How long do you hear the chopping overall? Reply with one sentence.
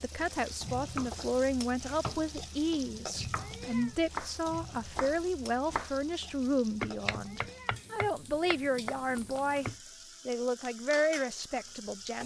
The chopping can be heard for 9 seconds in total.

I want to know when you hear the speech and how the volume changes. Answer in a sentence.
You can hear the speech from 0.0 to 12.2 s, at a steady volume.